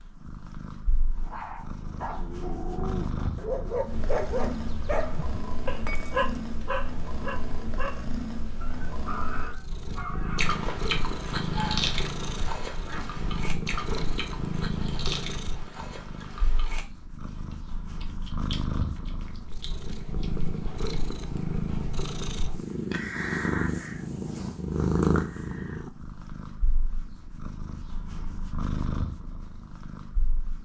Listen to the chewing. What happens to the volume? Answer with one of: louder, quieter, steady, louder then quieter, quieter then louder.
quieter.